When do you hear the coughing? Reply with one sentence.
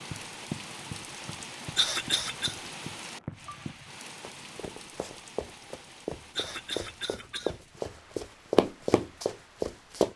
You can hear the coughing from 1.8 to 2.5 s and from 6.3 to 7.5 s.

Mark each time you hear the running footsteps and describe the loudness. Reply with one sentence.
You can hear the running footsteps from 0.0 to 10.1 s, getting louder.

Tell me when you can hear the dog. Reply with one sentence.
You can't hear the dog here.